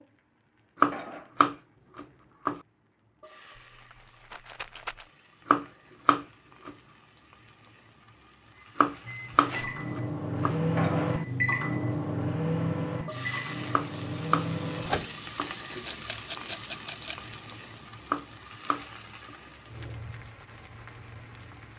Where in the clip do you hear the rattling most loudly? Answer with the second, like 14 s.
16 s.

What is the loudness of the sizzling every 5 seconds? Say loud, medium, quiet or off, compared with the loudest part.
quiet, quiet, loud, loud, medium.